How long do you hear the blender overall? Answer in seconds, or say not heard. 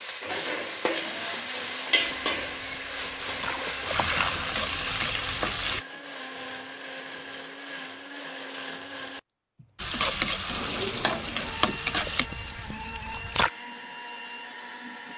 15 s.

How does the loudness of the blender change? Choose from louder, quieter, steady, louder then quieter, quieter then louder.
steady.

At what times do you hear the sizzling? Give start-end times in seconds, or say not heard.
0.0-5.8, 9.8-12.2.